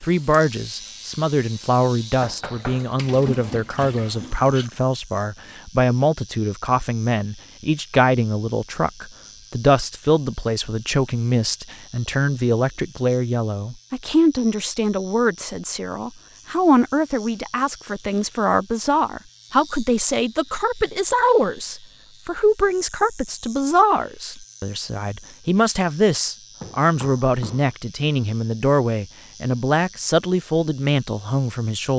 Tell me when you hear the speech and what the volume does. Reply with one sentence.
The speech can be heard from 0.0 to 31.9 s, at a steady volume.